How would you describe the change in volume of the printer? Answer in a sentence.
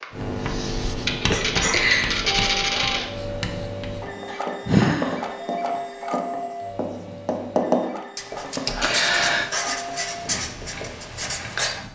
The volume of the printer goes down.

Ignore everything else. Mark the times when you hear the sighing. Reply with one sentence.
The sighing can be heard from 1.3 to 2.2 s, from 4.3 to 5.2 s and from 8.7 to 9.5 s.